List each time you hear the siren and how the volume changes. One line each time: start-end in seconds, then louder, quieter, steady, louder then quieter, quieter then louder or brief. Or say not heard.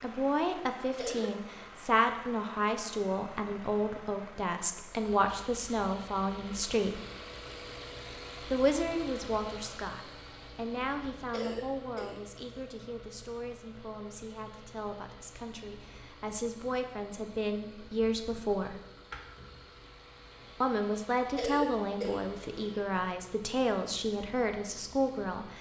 not heard.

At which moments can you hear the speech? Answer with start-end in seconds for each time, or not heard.
0.0-7.0, 8.4-18.8, 20.6-25.5.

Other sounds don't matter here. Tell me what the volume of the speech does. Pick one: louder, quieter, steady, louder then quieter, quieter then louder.
quieter then louder.